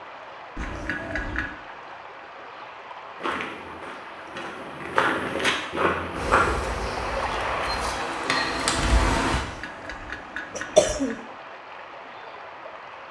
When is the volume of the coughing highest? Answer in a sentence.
The loudest moment of the coughing is at 11 seconds.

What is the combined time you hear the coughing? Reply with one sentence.
You can hear the coughing for 3 seconds altogether.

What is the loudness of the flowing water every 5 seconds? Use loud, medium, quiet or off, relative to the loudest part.
medium, loud, medium.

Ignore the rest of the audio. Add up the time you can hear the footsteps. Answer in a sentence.
The footsteps can be heard for 3 seconds in total.